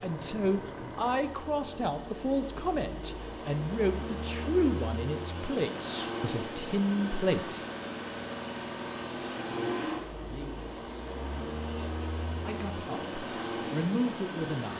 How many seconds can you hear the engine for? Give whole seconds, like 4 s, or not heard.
15 s.